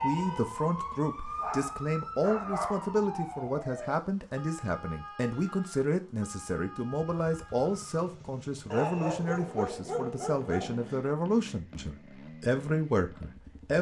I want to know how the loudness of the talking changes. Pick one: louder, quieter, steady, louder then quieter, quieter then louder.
steady.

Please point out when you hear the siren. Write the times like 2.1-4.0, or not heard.
0.0-7.9.